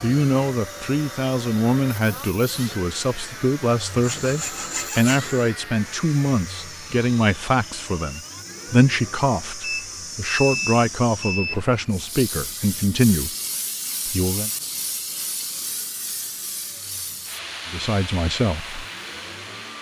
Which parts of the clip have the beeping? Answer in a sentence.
You can hear the beeping from 9.6 to 11.6 s.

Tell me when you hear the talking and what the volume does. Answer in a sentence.
The talking can be heard from 0.0 to 13.3 s, at a steady volume; briefly from 14.1 to 14.5 s; and briefly from 17.7 to 18.9 s.